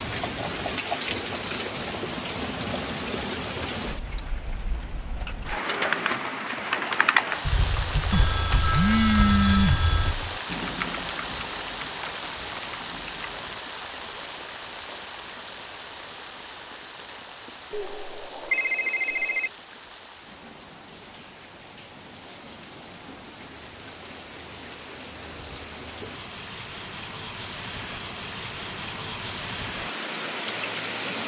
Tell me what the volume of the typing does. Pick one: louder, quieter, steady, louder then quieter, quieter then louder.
quieter.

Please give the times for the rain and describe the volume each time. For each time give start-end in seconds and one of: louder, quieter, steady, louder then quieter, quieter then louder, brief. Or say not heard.
0.0-31.2 quieter then louder.